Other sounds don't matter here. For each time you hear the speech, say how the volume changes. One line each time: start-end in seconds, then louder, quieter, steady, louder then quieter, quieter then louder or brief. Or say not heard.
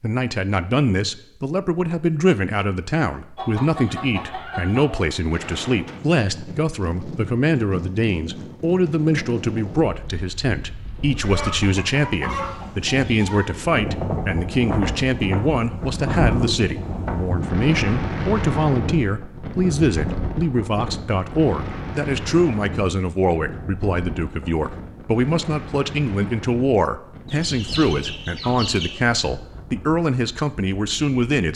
0.0-31.5 steady.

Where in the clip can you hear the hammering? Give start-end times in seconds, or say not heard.
not heard.